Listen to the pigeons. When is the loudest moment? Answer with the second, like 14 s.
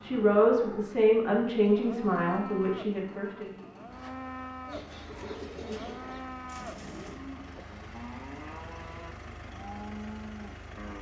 6 s.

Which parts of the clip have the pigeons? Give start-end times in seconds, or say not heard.
4.7-7.2.